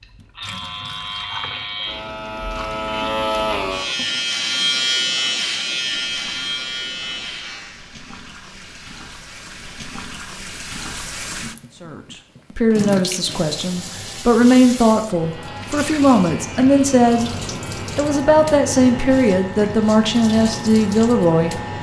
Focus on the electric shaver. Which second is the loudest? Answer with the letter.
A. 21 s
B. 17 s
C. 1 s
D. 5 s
D.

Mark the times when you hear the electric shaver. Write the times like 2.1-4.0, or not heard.
0.0-7.8, 15.0-21.7.